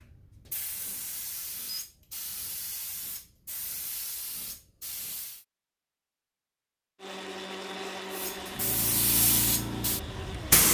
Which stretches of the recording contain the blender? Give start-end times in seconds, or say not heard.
7.0-10.6.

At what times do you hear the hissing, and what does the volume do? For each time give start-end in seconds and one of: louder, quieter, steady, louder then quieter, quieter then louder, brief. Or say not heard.
0.0-5.5 steady
8.1-10.6 brief.